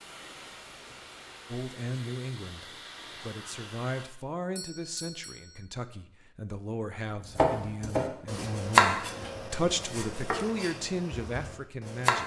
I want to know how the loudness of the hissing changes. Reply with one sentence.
The loudness of the hissing stays about the same.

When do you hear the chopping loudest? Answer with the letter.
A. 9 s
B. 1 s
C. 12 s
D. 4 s
A.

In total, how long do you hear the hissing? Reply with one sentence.
You can hear the hissing for 4 seconds altogether.